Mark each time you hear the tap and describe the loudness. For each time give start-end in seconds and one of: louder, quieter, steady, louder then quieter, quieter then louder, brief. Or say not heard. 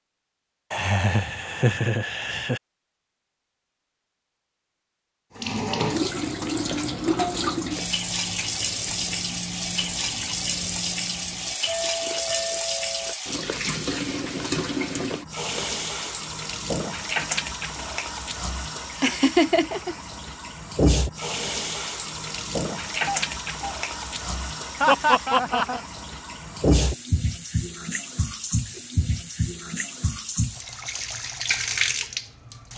5.3-32.7 steady.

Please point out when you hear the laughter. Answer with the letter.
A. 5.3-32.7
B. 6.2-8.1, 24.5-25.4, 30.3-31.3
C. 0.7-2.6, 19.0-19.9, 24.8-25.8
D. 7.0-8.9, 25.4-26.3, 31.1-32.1
C.